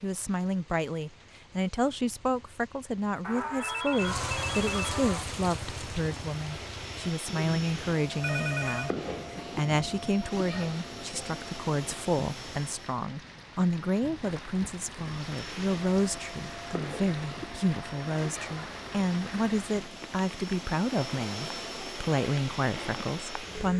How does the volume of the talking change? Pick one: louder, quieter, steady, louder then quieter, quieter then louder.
steady.